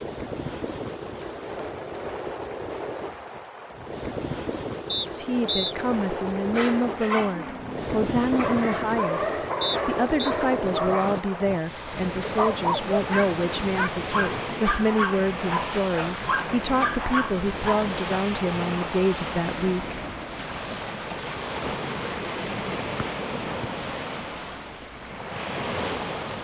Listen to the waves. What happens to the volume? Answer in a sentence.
The loudness of the waves stays about the same.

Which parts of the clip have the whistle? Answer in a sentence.
The whistle can be heard from 4.8 to 5.8 s, from 9.6 to 10.3 s and from 22.9 to 23.7 s.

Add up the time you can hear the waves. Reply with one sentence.
The waves can be heard for 26 seconds in total.